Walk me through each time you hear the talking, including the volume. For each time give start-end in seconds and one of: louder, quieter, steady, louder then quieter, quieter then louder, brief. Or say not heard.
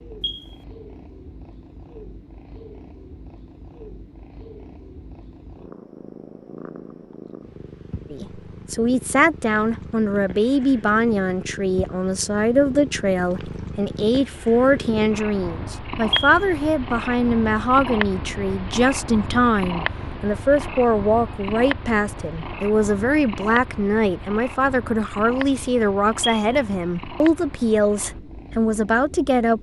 8.1-29.5 steady.